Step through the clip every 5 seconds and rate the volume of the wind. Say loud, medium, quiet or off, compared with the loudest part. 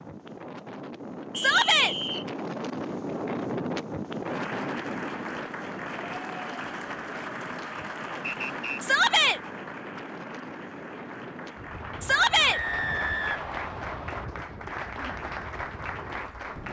loud, medium, medium, medium.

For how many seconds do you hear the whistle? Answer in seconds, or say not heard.
3 s.